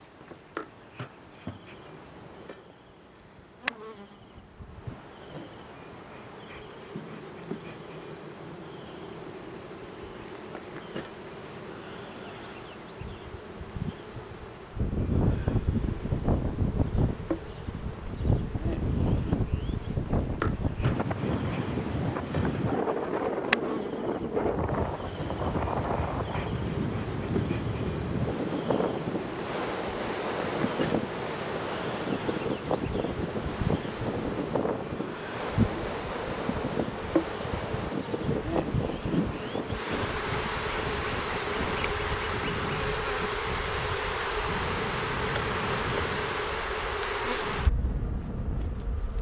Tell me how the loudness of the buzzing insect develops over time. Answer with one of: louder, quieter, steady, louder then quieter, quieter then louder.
louder.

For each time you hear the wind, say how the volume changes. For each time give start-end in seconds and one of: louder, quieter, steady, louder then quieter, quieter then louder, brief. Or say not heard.
14.7-49.1 quieter.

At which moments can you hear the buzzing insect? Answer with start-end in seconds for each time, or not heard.
0.0-49.1.